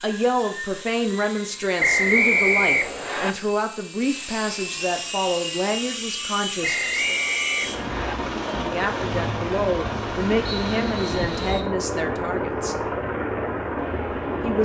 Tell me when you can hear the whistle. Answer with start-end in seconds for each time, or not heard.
1.8-3.4, 6.6-8.2, 10.5-11.8.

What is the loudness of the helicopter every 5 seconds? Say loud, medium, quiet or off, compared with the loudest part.
medium, loud, loud.